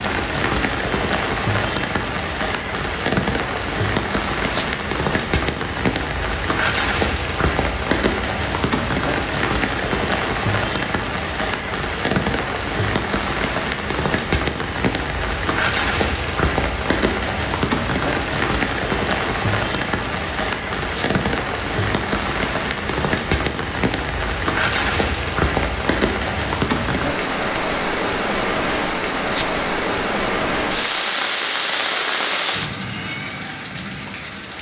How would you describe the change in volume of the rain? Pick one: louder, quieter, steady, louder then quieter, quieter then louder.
steady.